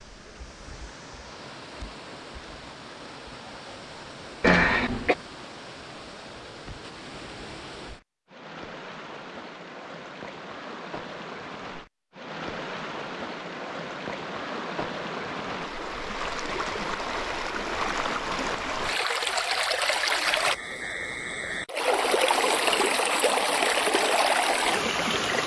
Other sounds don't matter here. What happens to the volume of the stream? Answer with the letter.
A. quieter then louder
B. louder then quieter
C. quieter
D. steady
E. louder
E.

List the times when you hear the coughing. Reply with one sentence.
The coughing can be heard from 4.4 to 5.2 s.